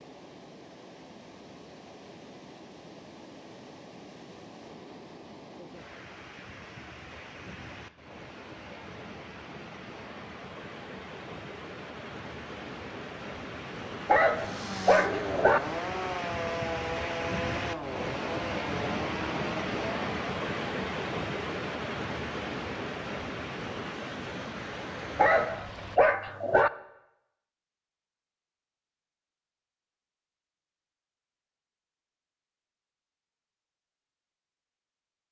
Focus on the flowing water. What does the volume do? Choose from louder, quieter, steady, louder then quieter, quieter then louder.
louder.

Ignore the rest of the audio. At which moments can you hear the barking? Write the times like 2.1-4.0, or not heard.
14.1-15.6, 25.1-26.7.